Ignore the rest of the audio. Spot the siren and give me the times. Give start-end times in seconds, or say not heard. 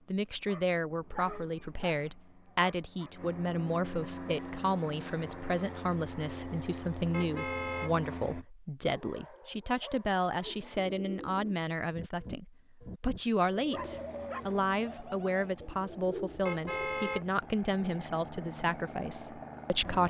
not heard.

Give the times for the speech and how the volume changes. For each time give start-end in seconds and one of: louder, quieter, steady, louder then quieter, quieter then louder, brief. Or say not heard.
0.1-20.0 steady.